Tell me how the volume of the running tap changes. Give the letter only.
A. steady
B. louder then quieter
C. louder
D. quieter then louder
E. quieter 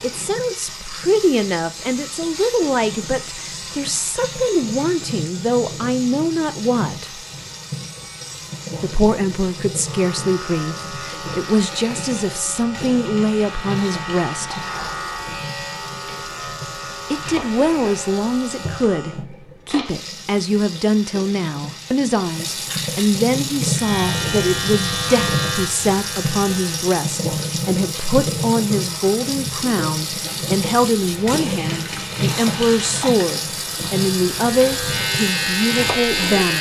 C.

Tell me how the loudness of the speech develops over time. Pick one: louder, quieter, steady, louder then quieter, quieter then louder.
steady.